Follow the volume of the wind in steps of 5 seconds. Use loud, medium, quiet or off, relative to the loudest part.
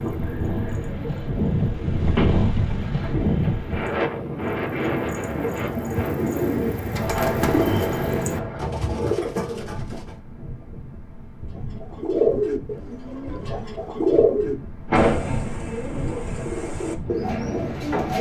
loud, medium, quiet, medium.